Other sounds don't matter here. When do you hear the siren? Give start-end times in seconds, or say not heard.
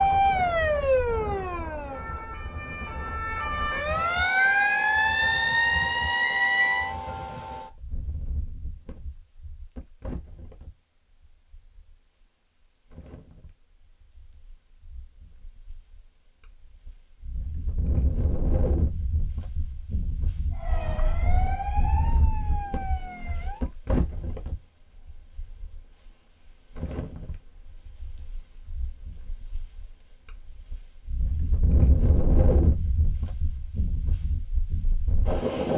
0.0-7.0, 20.5-23.7.